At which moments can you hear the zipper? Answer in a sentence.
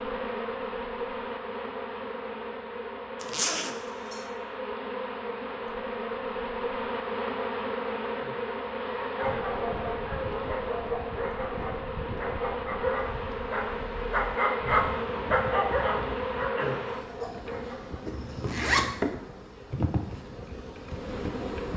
You can hear the zipper from 3.2 to 4.2 s and from 18.1 to 18.9 s.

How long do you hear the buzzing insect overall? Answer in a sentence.
The buzzing insect can be heard for 22 seconds in total.